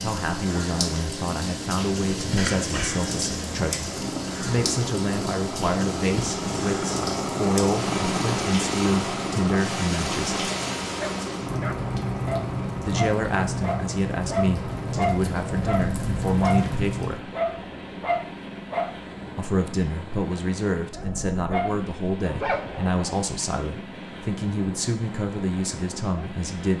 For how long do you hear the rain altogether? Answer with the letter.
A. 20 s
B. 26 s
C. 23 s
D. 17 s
D.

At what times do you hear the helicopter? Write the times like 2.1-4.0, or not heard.
0.0-26.7.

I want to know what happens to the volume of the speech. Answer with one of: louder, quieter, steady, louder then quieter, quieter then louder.
steady.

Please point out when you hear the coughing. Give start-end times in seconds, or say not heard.
2.4-3.0.